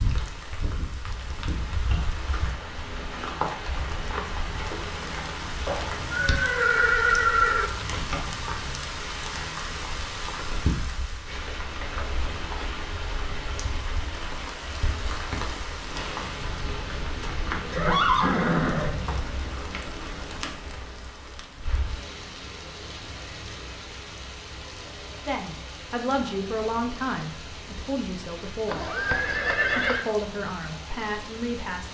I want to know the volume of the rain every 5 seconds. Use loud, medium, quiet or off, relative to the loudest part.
loud, loud, loud, loud, medium, medium, medium.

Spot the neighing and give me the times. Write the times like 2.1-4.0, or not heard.
5.7-7.7, 17.7-19.2, 28.6-30.1.